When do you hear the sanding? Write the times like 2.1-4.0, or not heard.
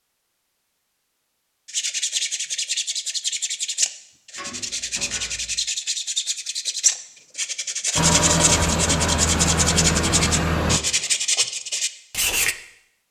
1.6-12.6.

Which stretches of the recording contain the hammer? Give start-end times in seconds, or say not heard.
not heard.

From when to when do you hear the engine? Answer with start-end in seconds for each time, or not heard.
8.0-10.8.